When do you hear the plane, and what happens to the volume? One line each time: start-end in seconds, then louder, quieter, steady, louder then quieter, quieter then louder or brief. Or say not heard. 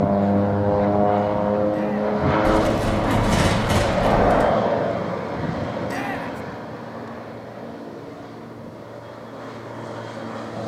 0.0-10.6 quieter.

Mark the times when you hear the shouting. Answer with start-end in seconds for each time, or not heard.
1.7-2.1, 5.8-6.4.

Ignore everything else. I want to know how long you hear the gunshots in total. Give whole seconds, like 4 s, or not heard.
2 s.